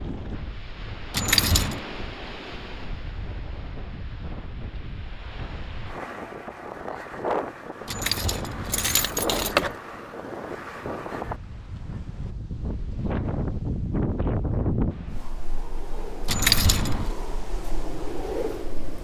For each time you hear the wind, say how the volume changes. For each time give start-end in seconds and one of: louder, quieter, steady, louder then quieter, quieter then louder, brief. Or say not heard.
0.0-18.9 louder then quieter.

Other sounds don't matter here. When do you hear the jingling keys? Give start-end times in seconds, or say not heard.
1.1-1.9, 7.8-9.8, 16.2-17.1.